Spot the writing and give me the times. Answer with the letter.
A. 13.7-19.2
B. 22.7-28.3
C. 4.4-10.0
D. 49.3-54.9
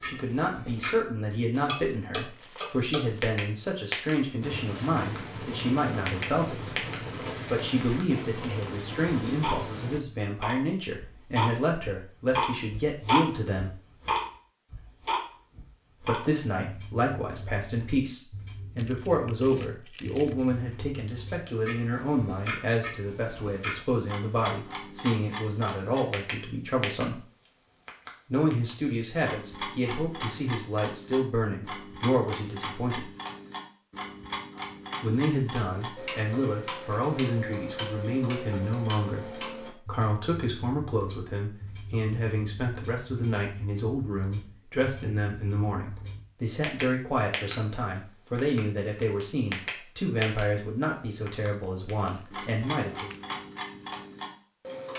C.